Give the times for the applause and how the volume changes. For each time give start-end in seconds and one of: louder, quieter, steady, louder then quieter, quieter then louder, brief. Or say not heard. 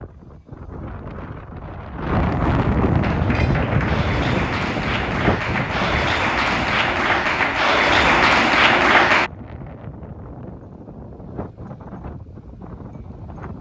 3.0-9.3 louder.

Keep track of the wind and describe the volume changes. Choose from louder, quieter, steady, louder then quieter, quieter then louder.
quieter.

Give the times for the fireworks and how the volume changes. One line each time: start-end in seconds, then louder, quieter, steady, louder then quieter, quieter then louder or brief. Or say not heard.
not heard.